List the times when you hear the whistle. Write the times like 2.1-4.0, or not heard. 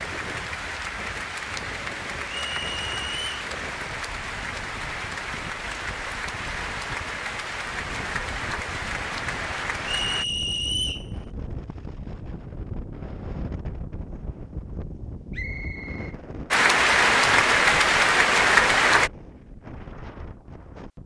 2.5-3.2, 9.8-11.1, 15.3-16.1.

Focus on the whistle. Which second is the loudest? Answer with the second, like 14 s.
11 s.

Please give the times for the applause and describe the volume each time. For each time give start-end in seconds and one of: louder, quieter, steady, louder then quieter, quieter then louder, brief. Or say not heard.
0.0-10.2 steady
16.5-19.1 brief.